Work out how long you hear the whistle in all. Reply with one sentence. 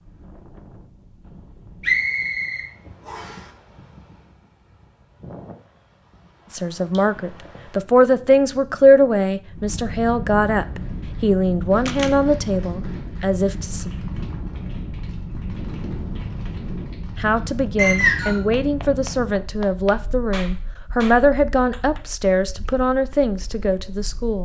You can hear the whistle for 2 seconds altogether.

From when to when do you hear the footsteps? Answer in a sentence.
The footsteps can't be heard in this clip.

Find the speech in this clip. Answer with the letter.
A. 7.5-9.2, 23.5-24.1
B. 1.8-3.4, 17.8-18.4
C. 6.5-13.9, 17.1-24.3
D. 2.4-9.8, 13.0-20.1
C.